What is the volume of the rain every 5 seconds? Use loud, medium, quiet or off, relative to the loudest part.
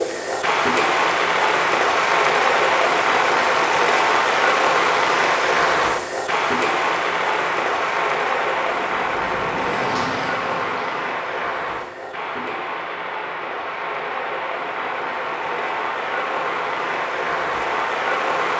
loud, loud, medium, medium.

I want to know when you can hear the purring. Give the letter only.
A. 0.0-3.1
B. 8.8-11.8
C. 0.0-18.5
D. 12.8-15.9
B.